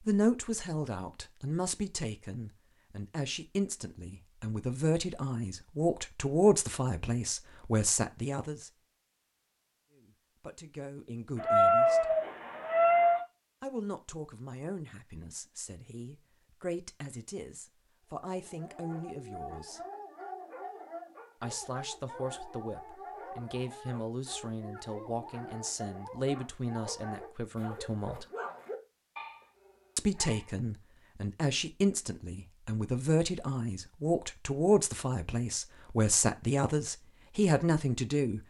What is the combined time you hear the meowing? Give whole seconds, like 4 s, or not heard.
2 s.